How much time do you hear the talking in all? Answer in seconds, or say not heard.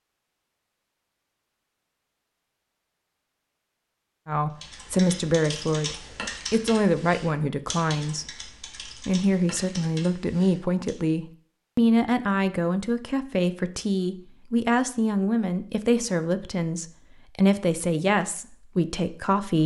15 s.